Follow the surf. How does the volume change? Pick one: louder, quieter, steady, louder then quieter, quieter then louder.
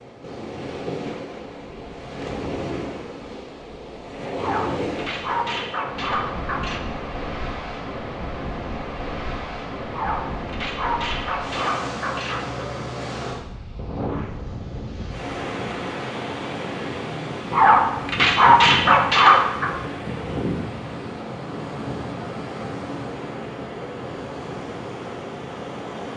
steady.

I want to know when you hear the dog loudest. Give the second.
19 s.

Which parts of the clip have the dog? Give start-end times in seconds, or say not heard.
4.3-6.8, 9.9-12.4, 17.5-19.7.